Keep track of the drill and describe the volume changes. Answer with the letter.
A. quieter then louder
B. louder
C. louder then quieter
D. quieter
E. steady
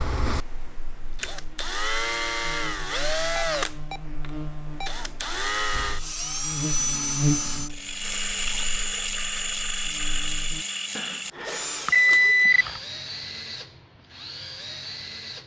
D.